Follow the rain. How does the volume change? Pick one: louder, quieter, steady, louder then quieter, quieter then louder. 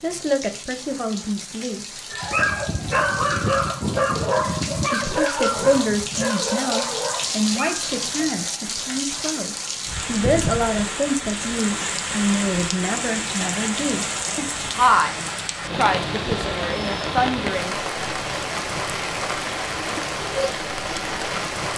louder.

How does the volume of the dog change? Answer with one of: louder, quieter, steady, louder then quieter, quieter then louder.
quieter.